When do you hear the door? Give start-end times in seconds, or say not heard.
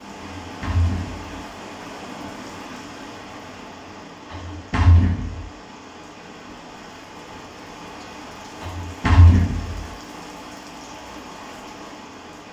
0.4-1.3, 4.3-5.5, 8.6-9.9.